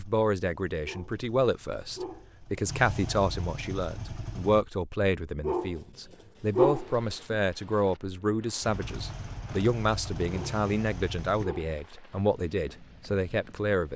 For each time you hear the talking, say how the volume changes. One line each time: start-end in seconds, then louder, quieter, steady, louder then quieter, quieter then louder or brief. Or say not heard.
0.0-13.9 steady.